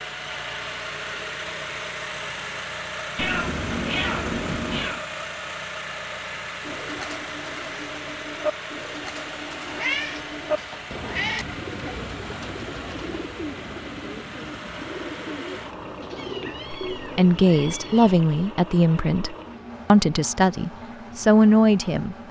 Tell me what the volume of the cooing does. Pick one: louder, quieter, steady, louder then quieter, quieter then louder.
steady.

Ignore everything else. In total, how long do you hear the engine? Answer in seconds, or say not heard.
22 s.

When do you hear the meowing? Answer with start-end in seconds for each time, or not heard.
3.1-5.0, 9.7-11.4, 16.1-18.2.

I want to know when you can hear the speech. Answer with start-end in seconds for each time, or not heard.
16.9-22.2.